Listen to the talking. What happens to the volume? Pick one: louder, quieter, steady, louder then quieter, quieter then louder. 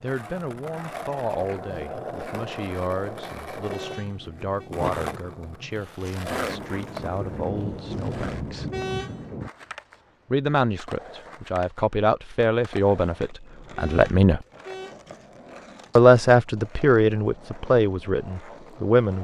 louder.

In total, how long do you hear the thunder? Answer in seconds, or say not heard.
3 s.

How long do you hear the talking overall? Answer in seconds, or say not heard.
16 s.